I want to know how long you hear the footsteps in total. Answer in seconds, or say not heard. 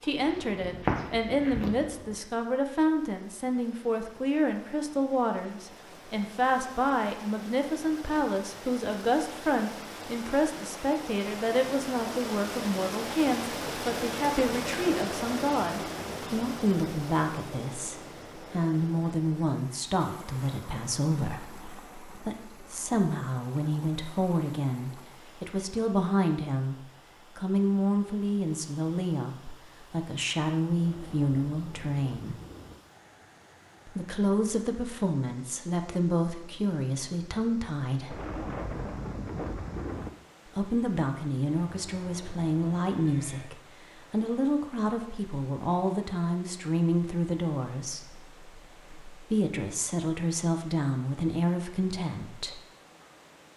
2 s.